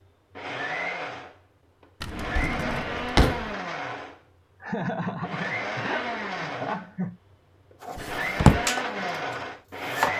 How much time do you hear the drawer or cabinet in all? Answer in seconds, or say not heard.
2 s.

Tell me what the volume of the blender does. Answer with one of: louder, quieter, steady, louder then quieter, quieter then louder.
steady.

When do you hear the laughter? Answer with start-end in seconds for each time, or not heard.
4.6-7.2.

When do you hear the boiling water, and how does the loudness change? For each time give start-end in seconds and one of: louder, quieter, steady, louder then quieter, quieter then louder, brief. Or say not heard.
not heard.